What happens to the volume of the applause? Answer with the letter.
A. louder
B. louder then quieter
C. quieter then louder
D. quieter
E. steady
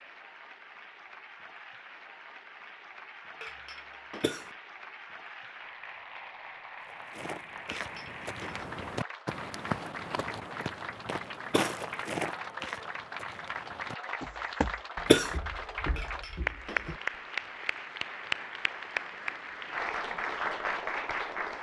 A.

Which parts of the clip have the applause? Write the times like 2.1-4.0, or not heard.
0.0-21.5.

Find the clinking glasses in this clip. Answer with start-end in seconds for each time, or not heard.
3.4-4.5, 7.8-8.7, 15.9-17.1.